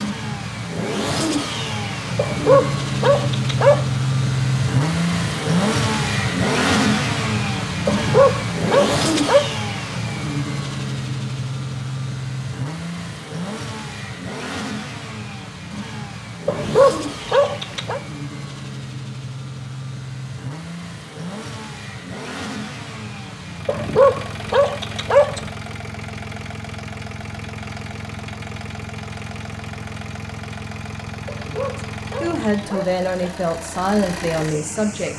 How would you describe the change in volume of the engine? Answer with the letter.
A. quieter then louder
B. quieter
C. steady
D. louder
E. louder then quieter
B.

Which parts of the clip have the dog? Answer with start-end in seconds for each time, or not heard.
2.1-3.9, 7.8-9.4, 16.4-18.0, 23.6-25.4, 31.2-33.3.